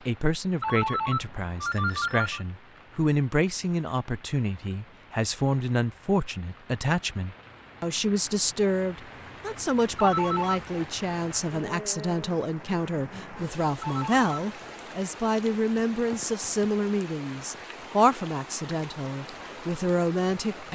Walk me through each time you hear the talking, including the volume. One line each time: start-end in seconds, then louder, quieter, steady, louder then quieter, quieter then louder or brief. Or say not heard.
0.1-20.7 steady.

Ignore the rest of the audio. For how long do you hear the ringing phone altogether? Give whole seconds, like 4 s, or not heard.
3 s.